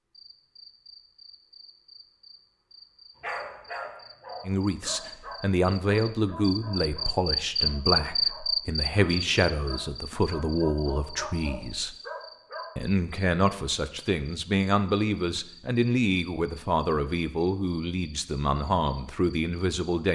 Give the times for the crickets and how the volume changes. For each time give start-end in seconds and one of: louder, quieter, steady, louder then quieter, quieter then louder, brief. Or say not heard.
0.1-20.0 louder then quieter.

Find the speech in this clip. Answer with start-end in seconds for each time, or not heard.
4.5-11.9, 12.8-20.0.